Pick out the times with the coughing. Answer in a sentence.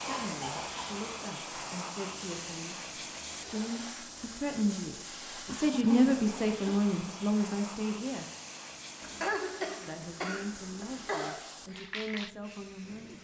The coughing can be heard from 0.1 to 0.8 s, from 5.5 to 6.8 s and from 9.0 to 11.4 s.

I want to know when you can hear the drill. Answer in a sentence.
You can't hear the drill here.